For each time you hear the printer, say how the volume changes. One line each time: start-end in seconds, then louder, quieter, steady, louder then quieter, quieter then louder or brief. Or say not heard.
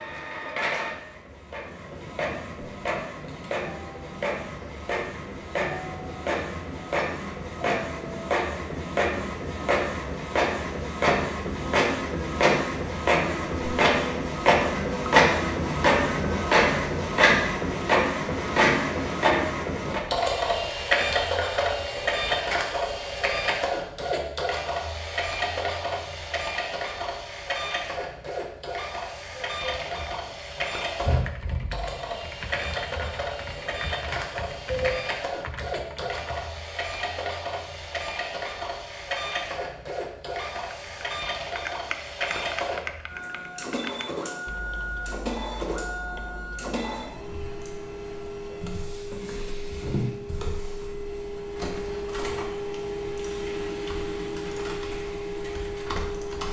0.0-56.4 louder then quieter.